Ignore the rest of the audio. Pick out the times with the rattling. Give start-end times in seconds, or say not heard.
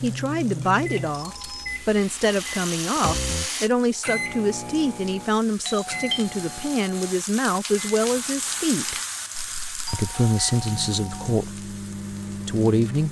1.5-3.7, 9.3-9.8.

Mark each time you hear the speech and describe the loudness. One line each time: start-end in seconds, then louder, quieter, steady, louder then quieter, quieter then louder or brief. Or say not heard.
0.0-8.9 steady
9.9-11.7 brief
12.4-13.0 brief.